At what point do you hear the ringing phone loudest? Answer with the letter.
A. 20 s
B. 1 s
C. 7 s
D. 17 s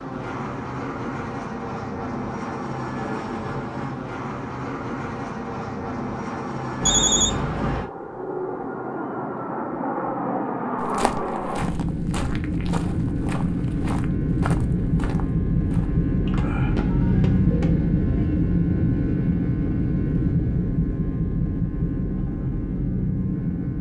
C.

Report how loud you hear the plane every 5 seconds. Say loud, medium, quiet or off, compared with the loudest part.
medium, medium, loud, loud, loud.